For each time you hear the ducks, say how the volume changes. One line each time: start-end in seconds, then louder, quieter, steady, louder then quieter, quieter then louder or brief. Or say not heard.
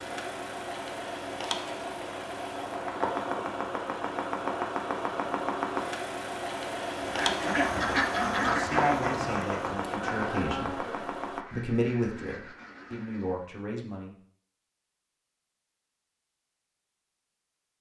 7.0-13.5 quieter.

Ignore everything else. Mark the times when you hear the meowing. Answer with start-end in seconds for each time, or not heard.
not heard.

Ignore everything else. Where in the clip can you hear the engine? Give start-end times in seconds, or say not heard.
0.0-11.4.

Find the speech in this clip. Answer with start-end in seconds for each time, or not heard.
8.4-10.9, 11.5-14.2.